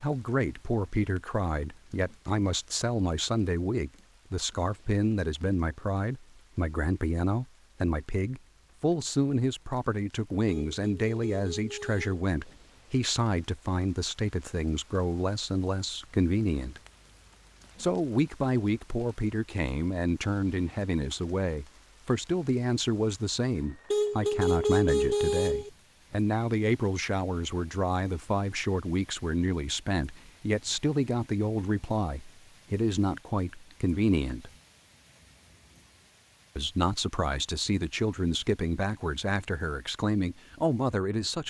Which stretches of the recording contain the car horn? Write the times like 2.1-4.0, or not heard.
10.4-12.2, 23.9-25.7.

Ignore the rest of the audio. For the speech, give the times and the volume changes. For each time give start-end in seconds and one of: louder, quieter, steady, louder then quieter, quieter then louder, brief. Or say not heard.
0.0-16.8 steady
17.8-34.5 steady
36.5-41.4 steady.